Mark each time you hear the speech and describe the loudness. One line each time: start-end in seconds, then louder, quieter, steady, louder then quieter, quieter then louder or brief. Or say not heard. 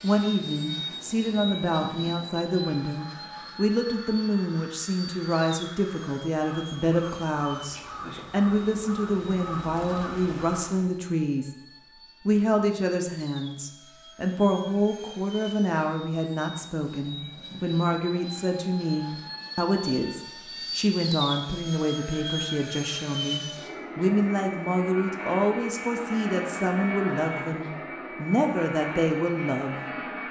0.0-11.5 steady
12.2-30.1 steady.